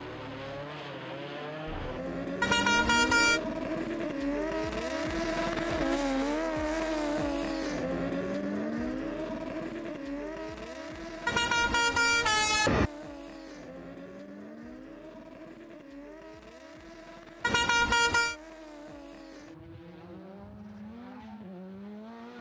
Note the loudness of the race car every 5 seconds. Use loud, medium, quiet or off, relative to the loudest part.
loud, loud, medium, quiet, quiet.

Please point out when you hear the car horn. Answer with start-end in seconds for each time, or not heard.
2.4-3.4, 11.2-12.9, 17.4-18.4.